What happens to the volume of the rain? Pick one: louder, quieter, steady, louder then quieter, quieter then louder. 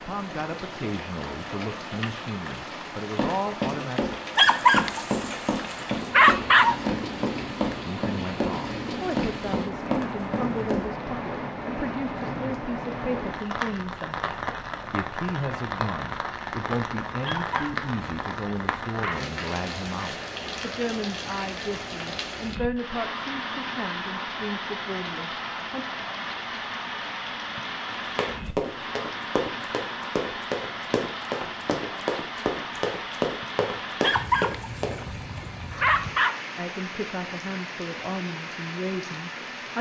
steady.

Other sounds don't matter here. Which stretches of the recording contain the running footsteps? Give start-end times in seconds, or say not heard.
3.1-10.9, 27.9-35.0.